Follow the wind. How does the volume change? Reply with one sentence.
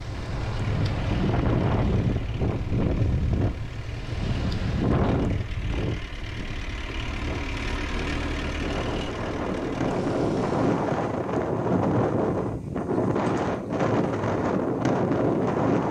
The loudness of the wind goes down, then up.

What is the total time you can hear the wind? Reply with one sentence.
You can hear the wind for 16 seconds altogether.